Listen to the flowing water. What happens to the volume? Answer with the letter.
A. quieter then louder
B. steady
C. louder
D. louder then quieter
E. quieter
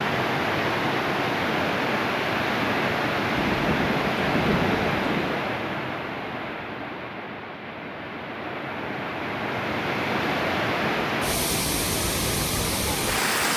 A.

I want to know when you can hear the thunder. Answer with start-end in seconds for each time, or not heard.
3.4-5.4.